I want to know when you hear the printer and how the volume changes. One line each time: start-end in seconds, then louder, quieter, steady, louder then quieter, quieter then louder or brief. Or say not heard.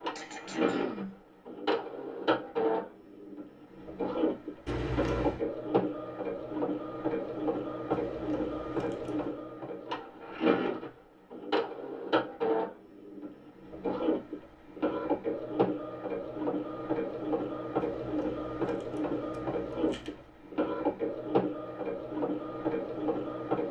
0.0-23.6 steady.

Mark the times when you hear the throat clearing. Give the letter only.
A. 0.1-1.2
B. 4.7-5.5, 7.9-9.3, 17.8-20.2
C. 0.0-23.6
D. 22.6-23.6
A.